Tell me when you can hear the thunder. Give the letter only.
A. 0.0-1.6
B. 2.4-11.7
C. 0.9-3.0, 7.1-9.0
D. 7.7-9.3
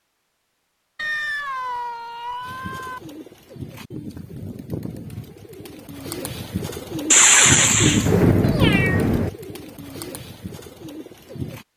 D.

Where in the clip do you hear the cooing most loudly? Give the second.
8 s.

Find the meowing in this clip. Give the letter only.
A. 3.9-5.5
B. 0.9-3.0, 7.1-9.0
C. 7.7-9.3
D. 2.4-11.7
B.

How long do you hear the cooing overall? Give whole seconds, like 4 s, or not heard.
9 s.